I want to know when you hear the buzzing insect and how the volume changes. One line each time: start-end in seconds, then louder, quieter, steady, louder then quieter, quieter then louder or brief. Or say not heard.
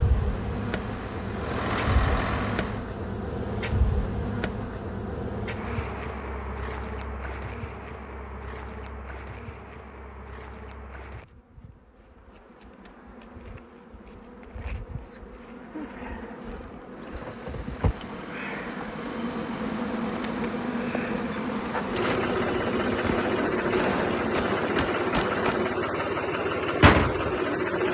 0.0-27.5 quieter then louder.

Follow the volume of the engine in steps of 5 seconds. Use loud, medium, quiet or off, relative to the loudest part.
medium, off, off, quiet, loud, loud.